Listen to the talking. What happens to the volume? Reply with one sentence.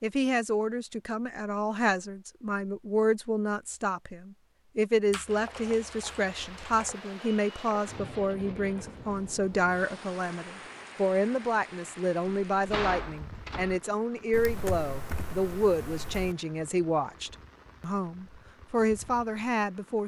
The volume of the talking stays about the same.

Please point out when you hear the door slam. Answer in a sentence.
The door slam can be heard from 12.2 to 13.8 s.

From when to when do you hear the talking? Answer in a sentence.
You can hear the talking from 0.0 to 20.0 s.